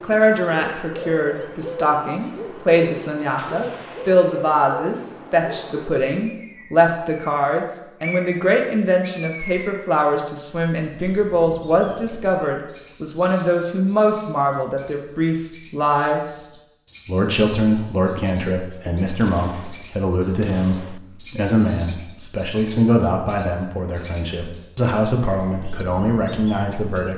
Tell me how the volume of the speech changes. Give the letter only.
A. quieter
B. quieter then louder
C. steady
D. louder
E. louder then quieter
C.